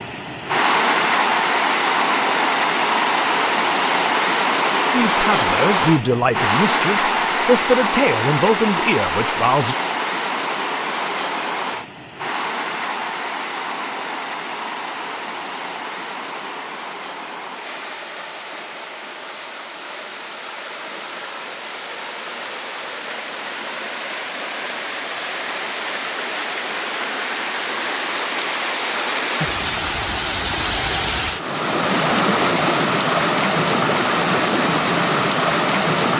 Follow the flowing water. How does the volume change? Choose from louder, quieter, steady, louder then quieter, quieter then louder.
quieter then louder.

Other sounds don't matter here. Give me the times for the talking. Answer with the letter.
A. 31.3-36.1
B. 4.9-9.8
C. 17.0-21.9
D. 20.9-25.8
B.